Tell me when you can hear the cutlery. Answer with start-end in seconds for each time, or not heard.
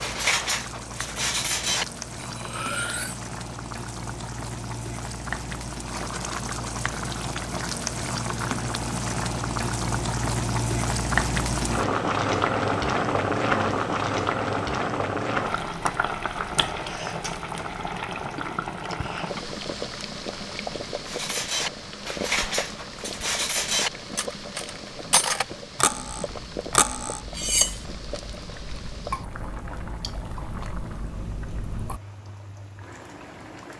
0.0-3.2, 21.1-27.8.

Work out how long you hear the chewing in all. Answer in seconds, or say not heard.
6 s.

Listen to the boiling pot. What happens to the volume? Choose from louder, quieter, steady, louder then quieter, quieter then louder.
louder then quieter.